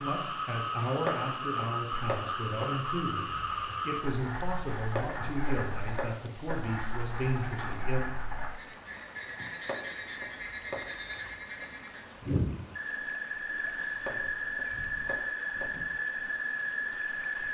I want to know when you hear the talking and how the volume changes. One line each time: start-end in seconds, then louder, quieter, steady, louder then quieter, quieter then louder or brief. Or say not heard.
0.0-8.0 steady.